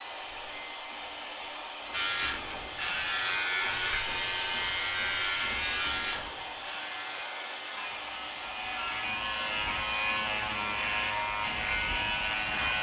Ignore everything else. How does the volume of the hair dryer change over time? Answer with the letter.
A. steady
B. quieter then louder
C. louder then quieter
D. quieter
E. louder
A.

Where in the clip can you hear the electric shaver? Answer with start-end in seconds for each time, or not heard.
1.9-12.7.